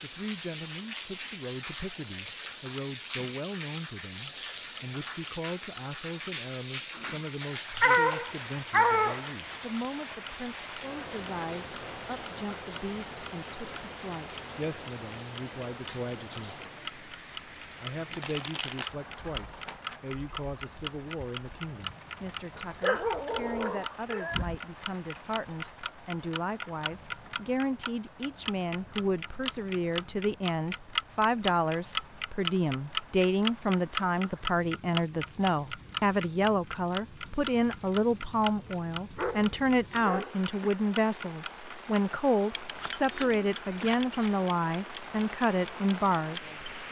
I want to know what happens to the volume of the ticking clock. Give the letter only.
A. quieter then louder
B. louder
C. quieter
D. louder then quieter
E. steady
D.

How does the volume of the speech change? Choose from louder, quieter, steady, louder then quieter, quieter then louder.
louder.